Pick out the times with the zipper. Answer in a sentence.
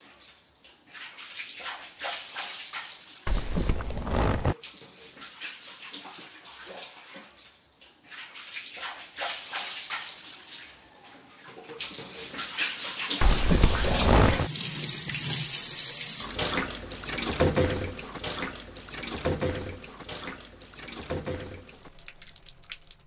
The zipper can be heard from 3.2 to 4.5 s and from 13.2 to 14.5 s.